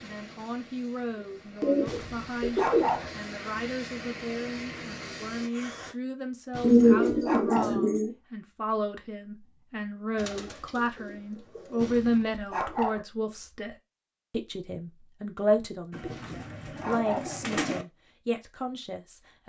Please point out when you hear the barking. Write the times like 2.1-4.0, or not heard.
1.9-3.1, 6.5-7.8, 11.8-13.1, 16.1-17.4.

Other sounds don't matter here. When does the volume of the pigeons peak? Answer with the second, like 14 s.
7 s.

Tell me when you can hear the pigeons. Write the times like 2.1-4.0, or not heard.
1.1-2.9, 6.6-8.1, 10.2-11.9, 15.9-17.9.